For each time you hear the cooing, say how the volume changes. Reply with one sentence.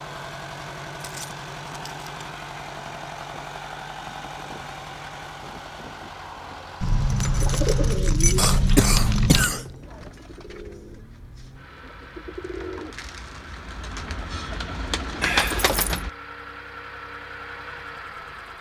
The cooing can be heard from 7.3 to 16.1 s, getting quieter then louder.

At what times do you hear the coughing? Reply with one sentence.
You can hear the coughing from 8.3 to 10.1 s.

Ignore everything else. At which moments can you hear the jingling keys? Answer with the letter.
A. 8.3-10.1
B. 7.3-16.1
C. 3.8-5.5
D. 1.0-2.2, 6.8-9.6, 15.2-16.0
D.